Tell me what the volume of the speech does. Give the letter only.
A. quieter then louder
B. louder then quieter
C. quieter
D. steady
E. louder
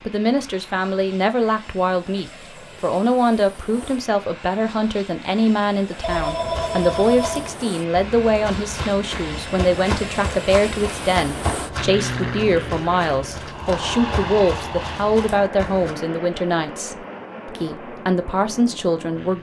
D.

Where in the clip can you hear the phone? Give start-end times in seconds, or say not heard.
6.0-7.5.